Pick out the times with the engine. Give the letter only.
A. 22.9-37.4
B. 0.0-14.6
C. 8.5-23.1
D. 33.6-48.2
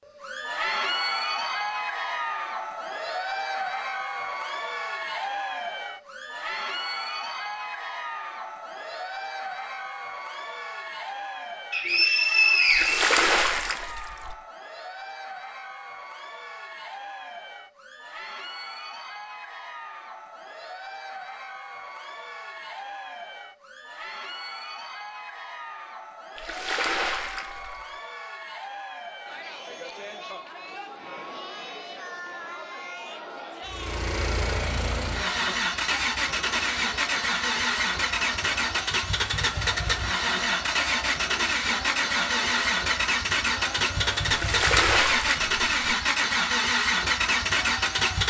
D.